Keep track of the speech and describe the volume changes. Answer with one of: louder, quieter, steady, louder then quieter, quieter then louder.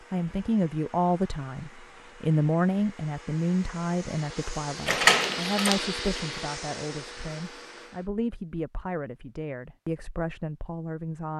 quieter.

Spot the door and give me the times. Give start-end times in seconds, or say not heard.
4.8-5.8.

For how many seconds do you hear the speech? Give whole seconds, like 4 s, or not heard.
11 s.